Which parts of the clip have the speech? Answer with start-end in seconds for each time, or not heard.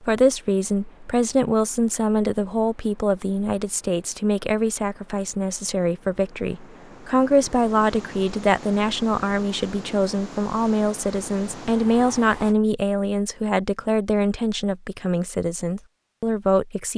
0.0-16.9.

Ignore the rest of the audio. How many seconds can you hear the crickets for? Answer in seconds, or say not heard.
not heard.